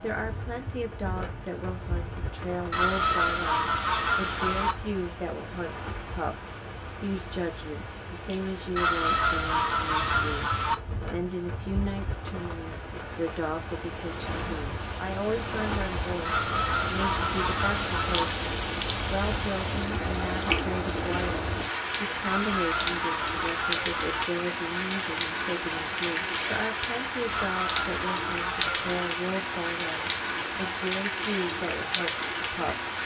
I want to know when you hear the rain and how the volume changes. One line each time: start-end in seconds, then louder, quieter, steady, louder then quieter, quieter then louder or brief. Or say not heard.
0.0-33.0 louder.